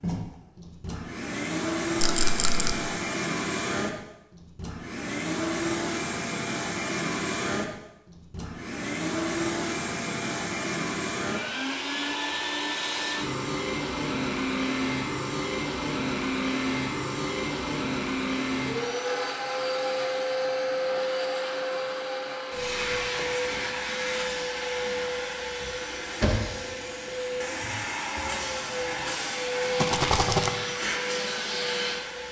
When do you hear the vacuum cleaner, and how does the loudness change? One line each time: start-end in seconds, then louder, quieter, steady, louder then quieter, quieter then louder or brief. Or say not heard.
0.0-32.2 steady.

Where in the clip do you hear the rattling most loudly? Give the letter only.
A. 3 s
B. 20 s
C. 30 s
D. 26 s
C.